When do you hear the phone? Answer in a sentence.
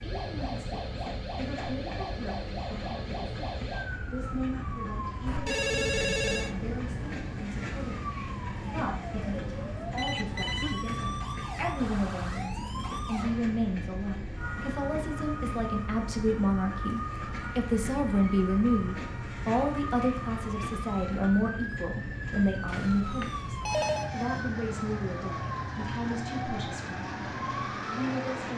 You can hear the phone from 5.2 to 6.5 s, from 9.9 to 10.8 s and from 22.6 to 24.1 s.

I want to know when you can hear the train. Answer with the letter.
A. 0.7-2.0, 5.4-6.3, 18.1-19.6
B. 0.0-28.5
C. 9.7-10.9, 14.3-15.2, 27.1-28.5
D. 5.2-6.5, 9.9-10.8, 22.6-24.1
B.